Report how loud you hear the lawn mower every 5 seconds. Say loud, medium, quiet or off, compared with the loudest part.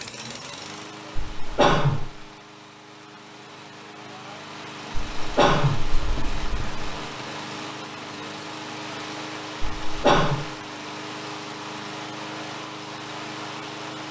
medium, loud, loud.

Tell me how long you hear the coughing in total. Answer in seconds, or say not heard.
3 s.